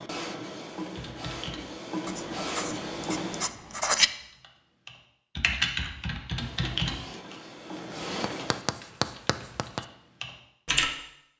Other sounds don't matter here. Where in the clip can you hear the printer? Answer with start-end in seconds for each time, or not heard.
0.0-3.5, 6.3-8.7.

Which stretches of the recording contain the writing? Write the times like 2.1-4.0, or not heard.
2.0-4.1, 7.9-9.8.